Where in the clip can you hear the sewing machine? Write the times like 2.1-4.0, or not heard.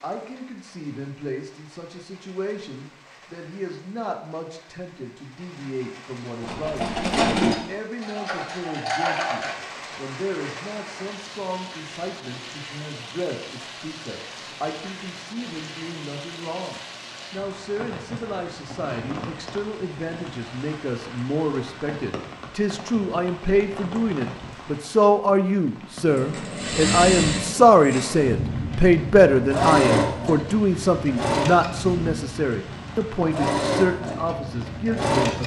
6.4-9.6, 26.1-35.4.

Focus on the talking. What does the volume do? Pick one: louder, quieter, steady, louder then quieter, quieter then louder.
louder.